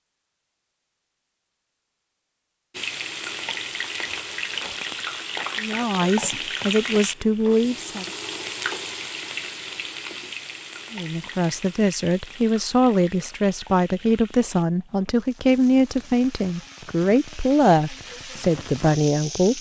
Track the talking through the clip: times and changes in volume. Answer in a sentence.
You can hear the talking briefly from 5.6 to 8.1 s; and from 10.9 to 19.5 s, at a steady volume.